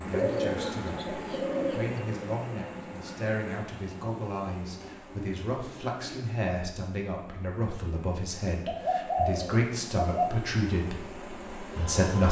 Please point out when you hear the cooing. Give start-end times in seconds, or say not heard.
0.1-2.0, 4.8-6.3, 8.7-10.4.